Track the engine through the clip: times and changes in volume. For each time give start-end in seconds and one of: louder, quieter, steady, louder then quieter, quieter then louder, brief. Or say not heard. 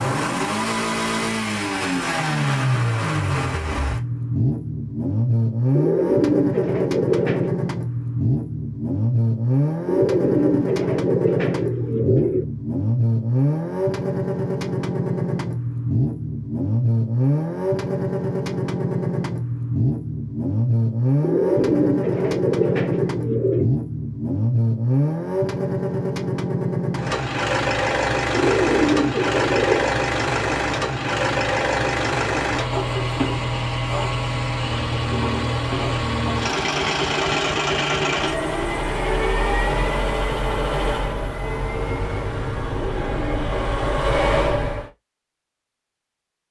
0.0-44.9 steady.